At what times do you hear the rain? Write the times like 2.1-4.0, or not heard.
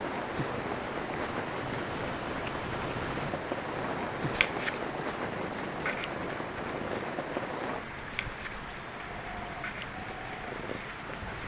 0.0-11.4.